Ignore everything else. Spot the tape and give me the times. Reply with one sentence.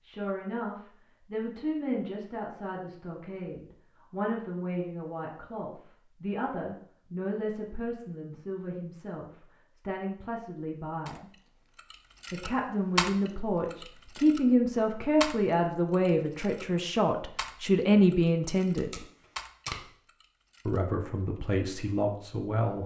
You can hear the tape from 18.6 to 19.9 s.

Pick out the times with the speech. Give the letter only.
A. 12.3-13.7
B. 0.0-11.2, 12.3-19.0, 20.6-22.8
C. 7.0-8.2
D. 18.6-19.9
B.